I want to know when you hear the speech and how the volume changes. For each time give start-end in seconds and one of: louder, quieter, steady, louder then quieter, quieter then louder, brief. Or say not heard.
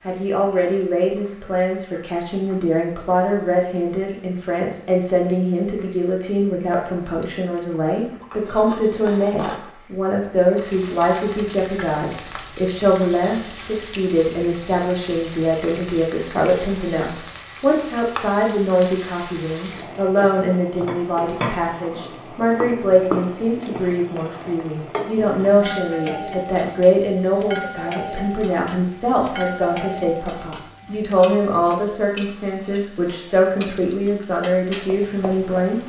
0.1-35.8 steady.